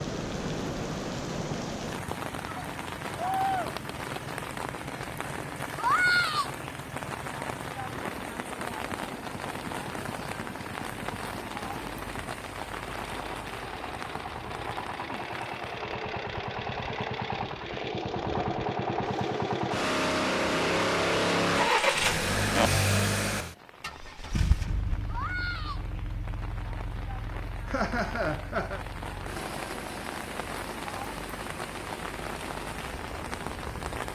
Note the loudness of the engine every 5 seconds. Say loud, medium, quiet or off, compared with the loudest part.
quiet, quiet, quiet, medium, loud, quiet, quiet.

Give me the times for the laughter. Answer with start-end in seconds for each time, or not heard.
27.6-28.8.